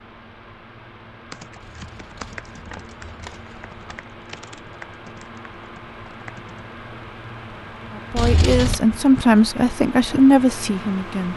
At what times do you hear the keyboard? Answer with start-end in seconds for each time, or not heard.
1.3-6.6.